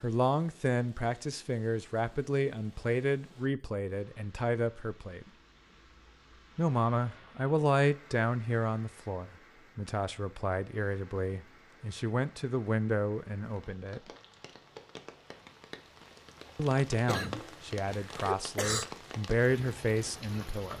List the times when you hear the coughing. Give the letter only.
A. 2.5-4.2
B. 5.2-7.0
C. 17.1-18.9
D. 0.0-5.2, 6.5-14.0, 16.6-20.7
C.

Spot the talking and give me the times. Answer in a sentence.
The talking can be heard from 0.0 to 5.2 s, from 6.5 to 14.0 s and from 16.6 to 20.7 s.